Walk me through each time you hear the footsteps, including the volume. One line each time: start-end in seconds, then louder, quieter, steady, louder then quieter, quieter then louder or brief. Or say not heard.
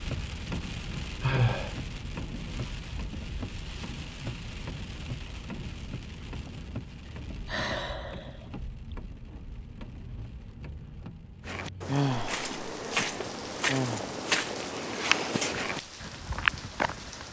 11.4-17.2 louder.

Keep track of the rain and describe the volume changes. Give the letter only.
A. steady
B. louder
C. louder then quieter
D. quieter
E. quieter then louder
D.